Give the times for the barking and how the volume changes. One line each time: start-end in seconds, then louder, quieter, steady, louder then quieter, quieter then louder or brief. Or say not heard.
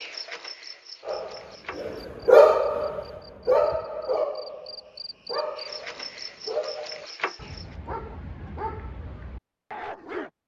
1.1-10.3 quieter.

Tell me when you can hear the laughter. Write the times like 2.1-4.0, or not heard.
not heard.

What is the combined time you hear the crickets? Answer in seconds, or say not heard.
8 s.